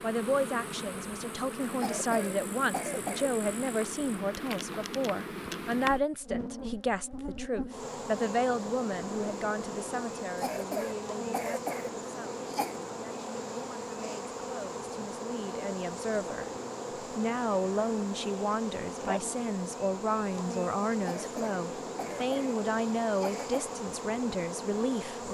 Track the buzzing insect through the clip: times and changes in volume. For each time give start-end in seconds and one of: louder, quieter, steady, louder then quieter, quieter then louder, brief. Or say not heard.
0.0-25.2 steady.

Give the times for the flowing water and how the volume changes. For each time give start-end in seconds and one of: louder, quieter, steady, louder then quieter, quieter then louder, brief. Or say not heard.
not heard.